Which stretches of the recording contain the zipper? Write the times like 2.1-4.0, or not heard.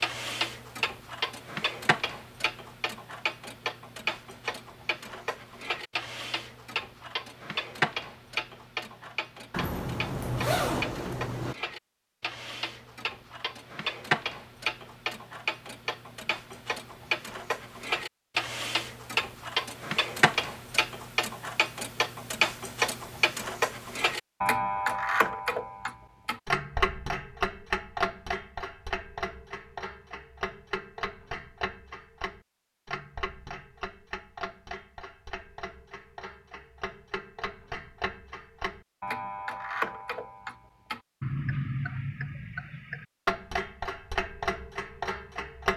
9.5-11.6.